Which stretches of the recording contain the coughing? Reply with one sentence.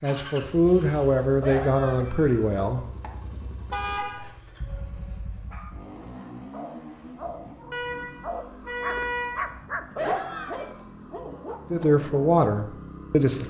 The coughing can be heard from 1.4 to 3.1 s and from 9.9 to 10.8 s.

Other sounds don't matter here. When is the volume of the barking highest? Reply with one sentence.
The loudest moment of the barking is at 10 seconds.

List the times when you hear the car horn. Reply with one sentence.
You can hear the car horn from 3.7 to 4.3 s and from 7.7 to 9.6 s.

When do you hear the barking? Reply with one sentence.
You can hear the barking from 4.6 to 12.1 s.